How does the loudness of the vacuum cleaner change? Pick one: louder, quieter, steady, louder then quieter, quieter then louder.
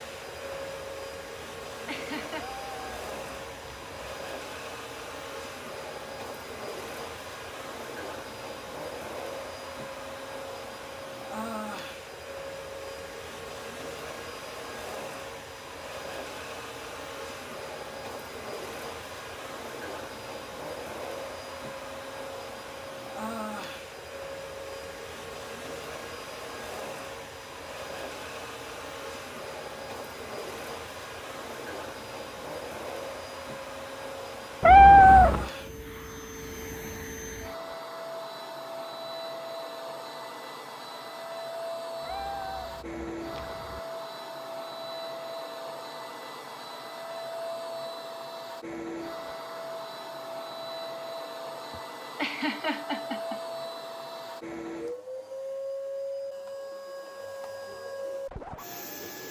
steady.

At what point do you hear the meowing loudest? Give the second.
35 s.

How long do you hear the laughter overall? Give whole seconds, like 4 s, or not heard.
3 s.